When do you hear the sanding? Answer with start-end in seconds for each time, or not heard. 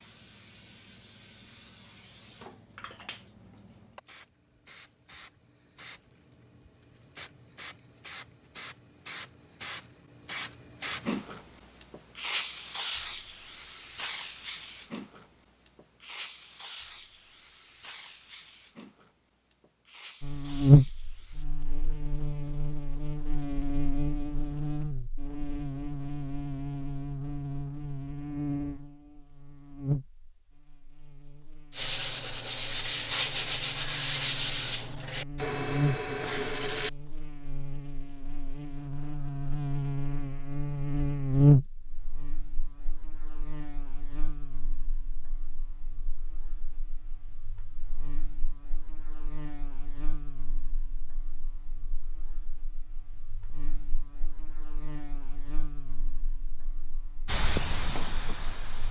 31.7-36.9.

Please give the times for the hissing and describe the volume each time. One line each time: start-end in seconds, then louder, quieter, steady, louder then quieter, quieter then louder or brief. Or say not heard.
0.0-21.4 louder then quieter
57.2-58.8 brief.